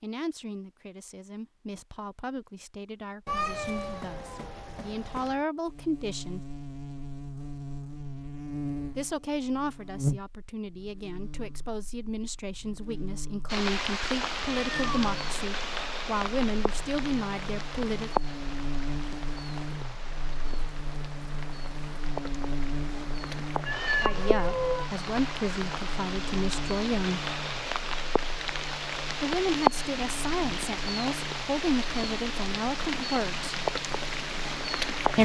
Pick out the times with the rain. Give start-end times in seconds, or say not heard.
13.4-35.1.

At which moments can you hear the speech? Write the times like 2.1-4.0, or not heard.
0.0-6.4, 8.9-18.1, 24.0-27.3, 29.2-33.5.